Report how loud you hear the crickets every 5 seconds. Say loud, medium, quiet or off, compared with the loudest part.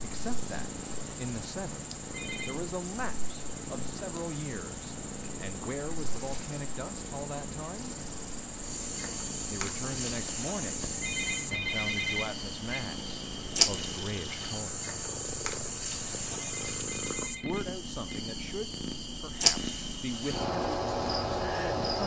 medium, medium, loud, loud, loud.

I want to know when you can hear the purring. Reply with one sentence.
The purring can be heard from 0.0 to 22.0 s.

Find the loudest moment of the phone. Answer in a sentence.
The loudest moment of the phone is at 12 seconds.